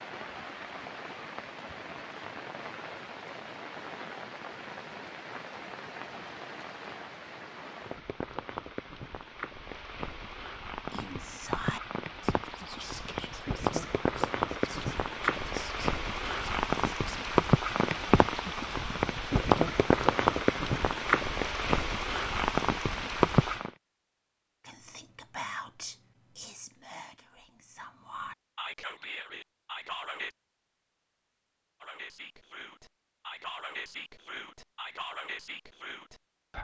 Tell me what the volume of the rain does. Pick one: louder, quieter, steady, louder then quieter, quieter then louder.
louder.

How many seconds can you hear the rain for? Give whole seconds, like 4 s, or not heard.
24 s.